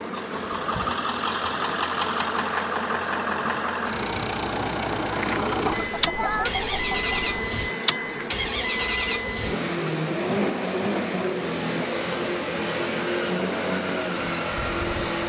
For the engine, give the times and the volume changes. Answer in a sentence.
The engine can be heard from 0.0 to 15.2 s, at a steady volume.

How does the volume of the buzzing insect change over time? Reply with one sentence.
The volume of the buzzing insect stays about the same.